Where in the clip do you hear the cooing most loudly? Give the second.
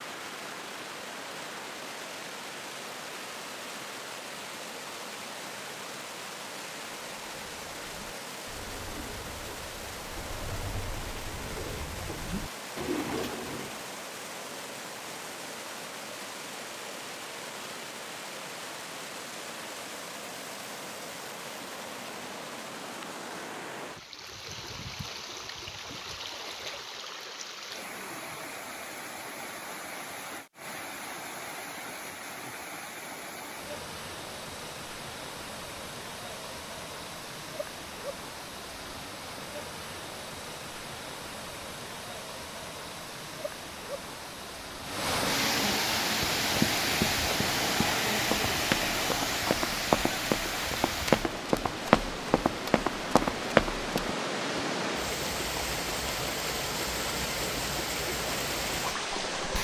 13 s.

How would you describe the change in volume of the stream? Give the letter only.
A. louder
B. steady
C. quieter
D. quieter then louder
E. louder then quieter
A.